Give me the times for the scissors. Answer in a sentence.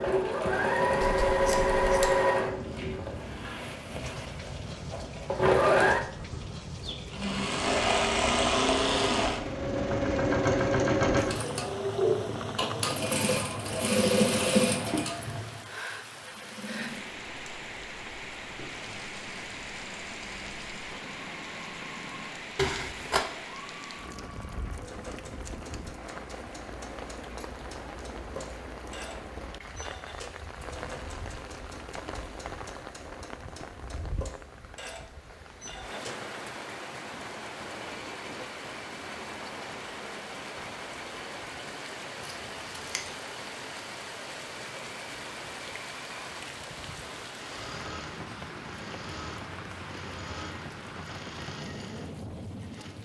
You can hear the scissors from 1.0 to 2.1 s, from 22.6 to 23.2 s and from 42.2 to 43.1 s.